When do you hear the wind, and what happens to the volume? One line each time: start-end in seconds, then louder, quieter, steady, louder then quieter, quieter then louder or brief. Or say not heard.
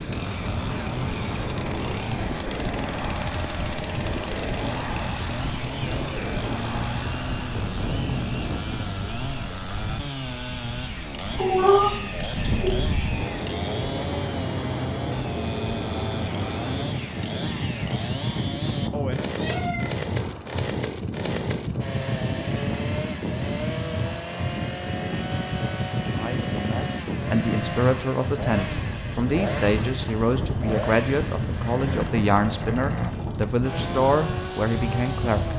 0.0-35.5 steady.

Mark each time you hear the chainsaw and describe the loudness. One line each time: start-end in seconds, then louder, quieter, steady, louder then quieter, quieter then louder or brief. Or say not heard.
0.0-35.5 steady.